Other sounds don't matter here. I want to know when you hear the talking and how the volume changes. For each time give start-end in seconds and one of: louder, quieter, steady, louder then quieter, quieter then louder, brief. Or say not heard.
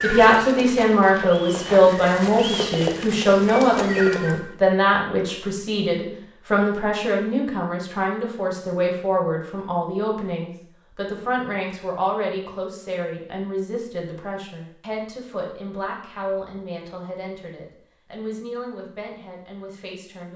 0.0-20.3 quieter.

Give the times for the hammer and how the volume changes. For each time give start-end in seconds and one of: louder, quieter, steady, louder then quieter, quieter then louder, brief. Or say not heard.
not heard.